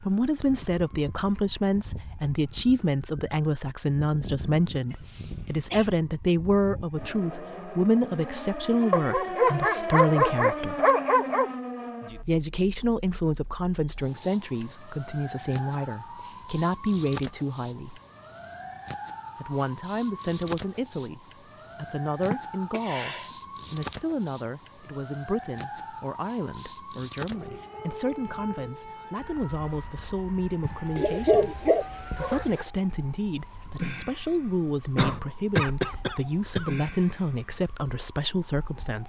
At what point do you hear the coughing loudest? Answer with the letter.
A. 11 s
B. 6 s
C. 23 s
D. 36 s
D.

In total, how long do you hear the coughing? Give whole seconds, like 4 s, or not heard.
4 s.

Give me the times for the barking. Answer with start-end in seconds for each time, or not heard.
8.9-11.5, 30.6-32.6.